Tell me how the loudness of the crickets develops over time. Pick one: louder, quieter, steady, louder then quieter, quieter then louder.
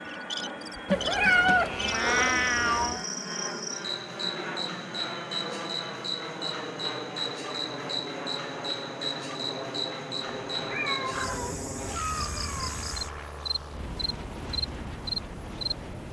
steady.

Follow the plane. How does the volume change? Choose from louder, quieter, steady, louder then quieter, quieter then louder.
steady.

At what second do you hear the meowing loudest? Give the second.
1 s.